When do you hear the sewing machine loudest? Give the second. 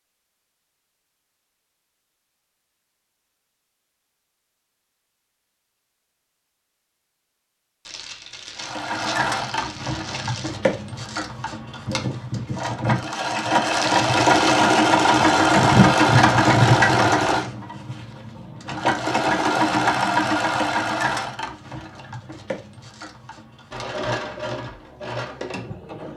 16 s.